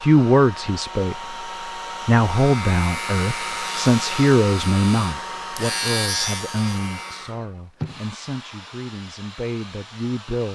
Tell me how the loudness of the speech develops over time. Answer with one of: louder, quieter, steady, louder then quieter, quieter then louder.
quieter.